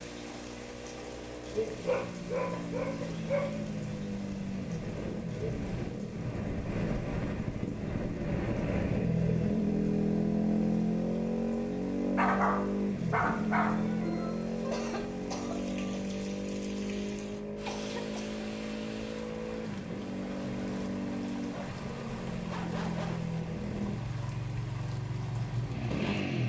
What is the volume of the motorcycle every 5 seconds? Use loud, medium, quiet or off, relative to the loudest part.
medium, loud, loud, medium, medium, loud.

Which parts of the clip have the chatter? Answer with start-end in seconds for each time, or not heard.
not heard.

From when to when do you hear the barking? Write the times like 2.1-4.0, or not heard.
1.9-3.6, 12.2-13.8, 21.7-23.3.